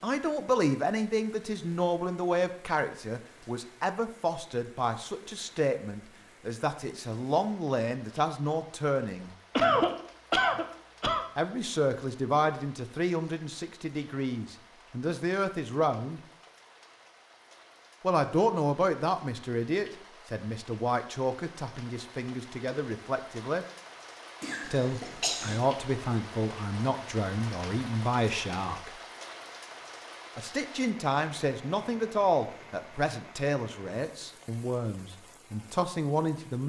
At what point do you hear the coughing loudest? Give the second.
10 s.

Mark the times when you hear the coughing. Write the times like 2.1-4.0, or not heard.
9.6-11.2, 24.4-25.6.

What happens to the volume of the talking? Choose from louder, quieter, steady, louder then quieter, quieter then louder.
steady.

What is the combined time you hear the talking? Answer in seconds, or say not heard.
30 s.